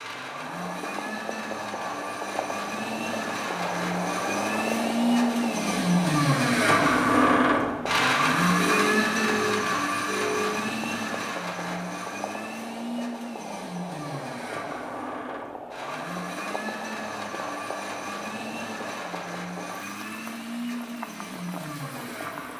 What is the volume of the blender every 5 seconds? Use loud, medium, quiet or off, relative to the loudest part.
medium, loud, medium, quiet, quiet.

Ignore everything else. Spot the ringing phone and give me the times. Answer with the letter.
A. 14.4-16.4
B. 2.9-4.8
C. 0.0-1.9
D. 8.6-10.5
D.